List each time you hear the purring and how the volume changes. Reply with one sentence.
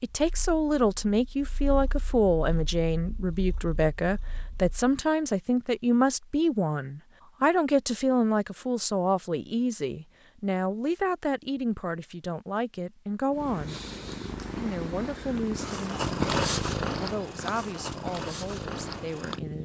You can hear the purring from 0.2 to 5.0 s, getting louder then quieter; and from 13.3 to 19.6 s, getting louder then quieter.